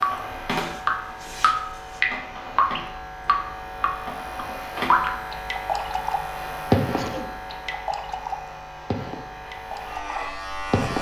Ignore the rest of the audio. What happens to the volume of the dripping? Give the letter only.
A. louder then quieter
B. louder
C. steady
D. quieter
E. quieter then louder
D.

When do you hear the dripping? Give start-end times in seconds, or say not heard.
0.0-10.9.